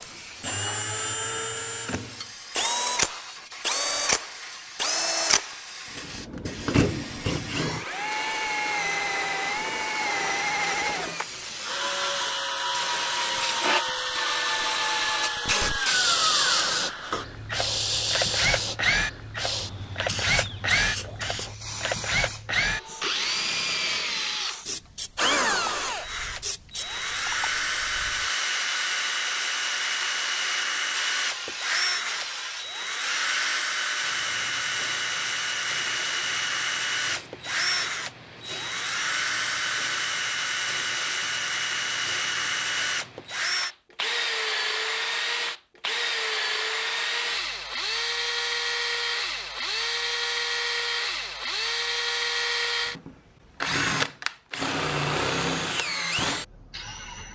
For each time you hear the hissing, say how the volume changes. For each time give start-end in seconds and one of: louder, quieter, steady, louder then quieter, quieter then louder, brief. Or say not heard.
0.0-43.6 louder then quieter.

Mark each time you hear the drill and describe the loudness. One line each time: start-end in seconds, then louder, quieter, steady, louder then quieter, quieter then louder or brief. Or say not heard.
0.0-57.2 steady.